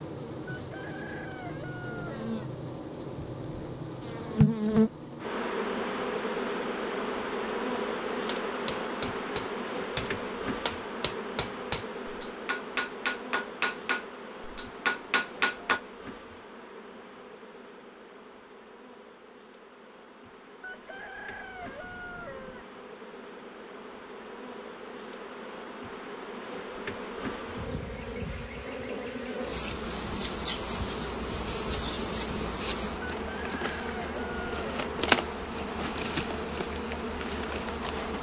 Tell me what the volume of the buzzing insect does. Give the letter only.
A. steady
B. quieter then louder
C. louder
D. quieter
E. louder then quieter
B.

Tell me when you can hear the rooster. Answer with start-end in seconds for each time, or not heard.
0.5-2.5, 20.6-22.6, 33.2-34.9.